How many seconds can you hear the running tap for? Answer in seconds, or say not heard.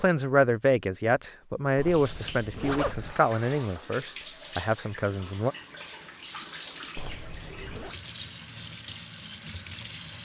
8 s.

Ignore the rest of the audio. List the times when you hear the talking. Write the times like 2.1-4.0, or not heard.
0.0-5.5.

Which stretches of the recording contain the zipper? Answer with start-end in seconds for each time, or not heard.
1.8-3.1, 7.0-8.0.